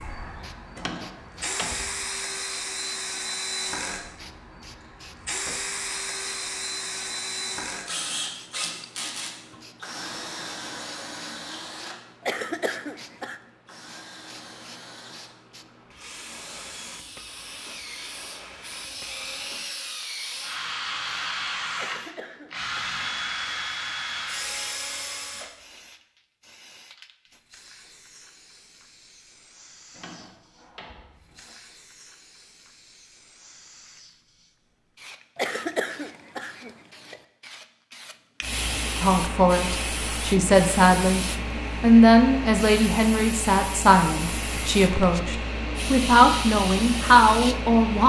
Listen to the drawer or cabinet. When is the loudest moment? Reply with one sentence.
The volume of the drawer or cabinet peaks at 1 second.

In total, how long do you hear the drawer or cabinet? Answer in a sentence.
The drawer or cabinet can be heard for 3 seconds in total.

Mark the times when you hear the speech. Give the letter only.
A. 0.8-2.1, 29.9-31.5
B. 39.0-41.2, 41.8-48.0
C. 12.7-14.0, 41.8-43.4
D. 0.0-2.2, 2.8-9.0
B.